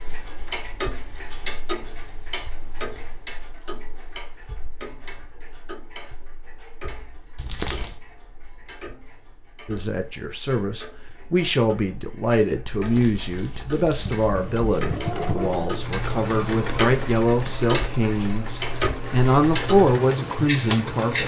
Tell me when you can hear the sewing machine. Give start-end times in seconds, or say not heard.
14.0-21.2.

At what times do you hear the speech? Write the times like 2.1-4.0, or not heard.
9.7-21.2.